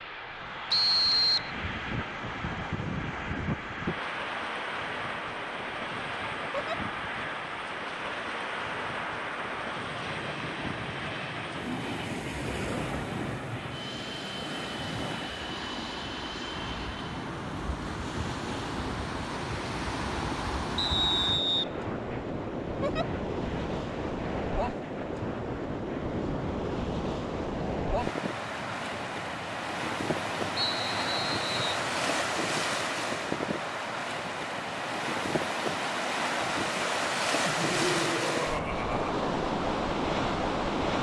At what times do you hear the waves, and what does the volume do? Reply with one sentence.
You can hear the waves from 0.0 to 40.9 s, getting louder.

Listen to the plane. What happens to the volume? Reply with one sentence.
The volume of the plane goes down.